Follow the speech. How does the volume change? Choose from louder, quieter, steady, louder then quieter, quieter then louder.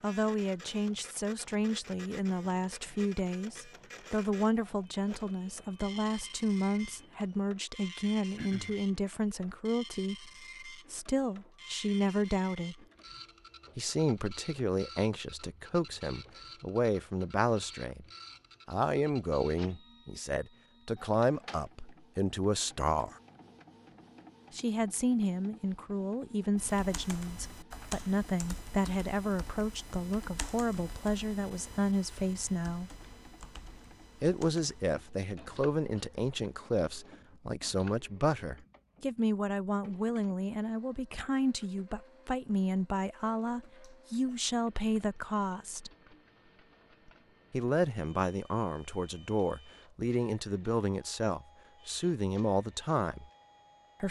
steady.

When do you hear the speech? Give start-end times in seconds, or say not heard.
0.0-12.8, 13.8-18.1, 18.6-23.2, 24.5-32.9, 34.2-45.9, 47.5-53.3.